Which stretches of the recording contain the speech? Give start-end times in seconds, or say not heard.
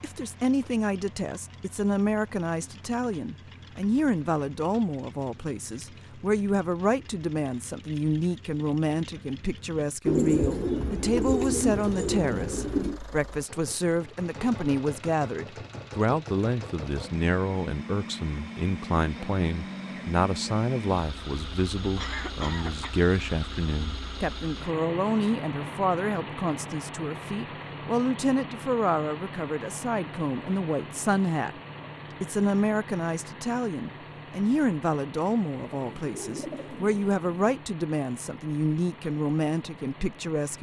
0.0-31.6, 32.2-40.5.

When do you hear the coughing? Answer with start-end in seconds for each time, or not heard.
21.9-22.9.